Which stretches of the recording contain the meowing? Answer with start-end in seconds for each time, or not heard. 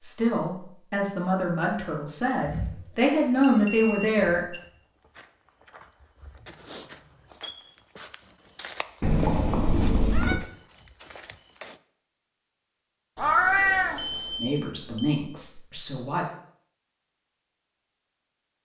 2.4-4.4, 9.0-10.4, 13.2-14.3.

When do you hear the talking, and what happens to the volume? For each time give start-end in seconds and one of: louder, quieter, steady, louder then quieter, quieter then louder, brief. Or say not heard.
0.0-4.5 louder
14.3-16.2 brief.